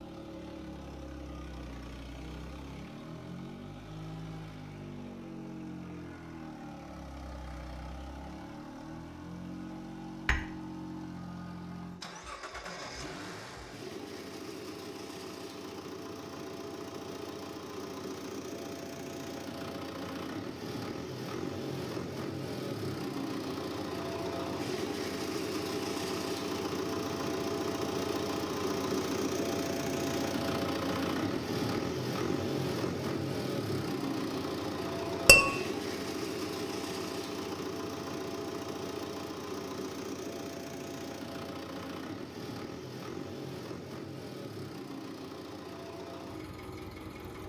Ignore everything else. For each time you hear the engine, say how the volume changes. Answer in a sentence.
The engine can be heard from 0.0 to 47.4 s, getting louder then quieter.